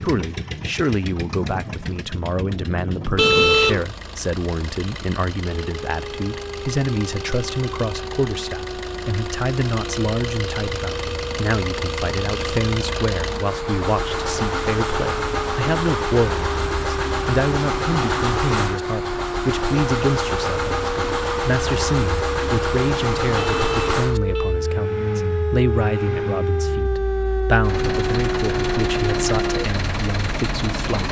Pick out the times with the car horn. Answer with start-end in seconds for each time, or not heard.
3.1-3.9, 23.4-24.6.